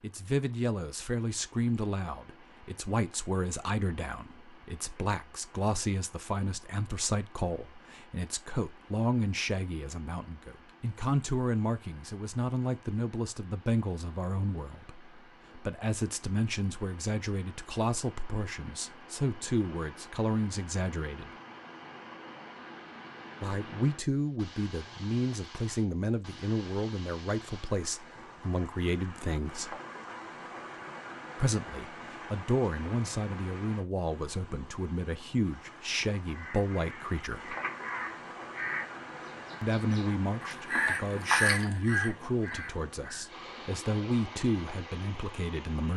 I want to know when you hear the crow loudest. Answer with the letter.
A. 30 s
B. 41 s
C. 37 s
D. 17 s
B.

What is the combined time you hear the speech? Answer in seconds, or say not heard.
40 s.